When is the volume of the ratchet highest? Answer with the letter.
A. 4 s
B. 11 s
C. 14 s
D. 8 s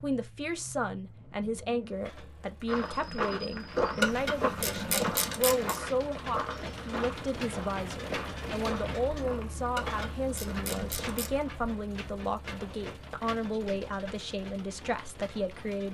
A.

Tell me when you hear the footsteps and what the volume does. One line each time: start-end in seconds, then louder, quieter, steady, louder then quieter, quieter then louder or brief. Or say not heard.
2.6-11.3 quieter.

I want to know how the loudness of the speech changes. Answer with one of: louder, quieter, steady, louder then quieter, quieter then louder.
steady.